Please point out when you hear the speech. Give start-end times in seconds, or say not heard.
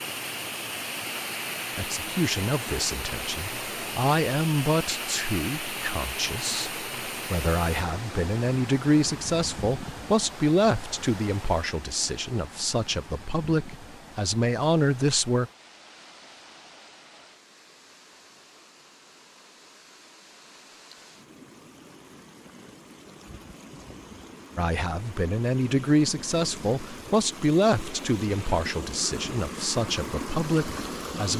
1.8-15.5, 24.6-31.3.